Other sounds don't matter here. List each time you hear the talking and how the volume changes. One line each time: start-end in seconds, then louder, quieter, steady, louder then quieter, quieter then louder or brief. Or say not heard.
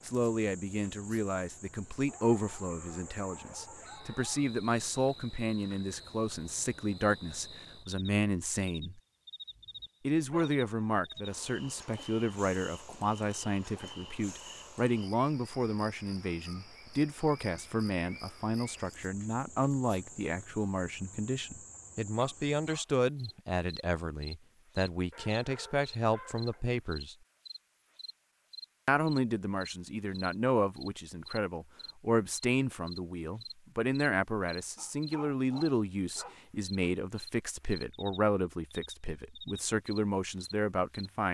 0.1-9.0 steady
10.1-27.1 steady
28.9-41.2 steady.